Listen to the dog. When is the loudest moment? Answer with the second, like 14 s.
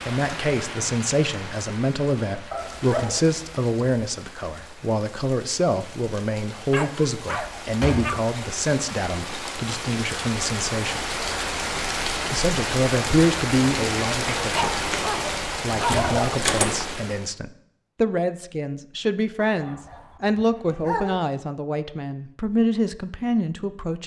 16 s.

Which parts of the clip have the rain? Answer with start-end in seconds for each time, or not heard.
0.0-17.3.